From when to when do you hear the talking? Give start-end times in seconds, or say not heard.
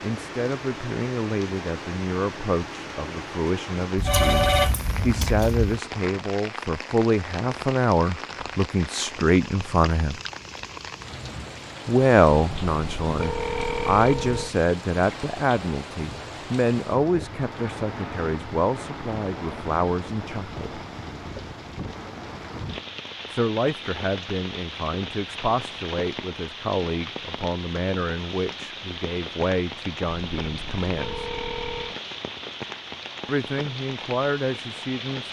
0.0-10.2, 11.8-20.8, 23.3-31.3, 33.2-35.2.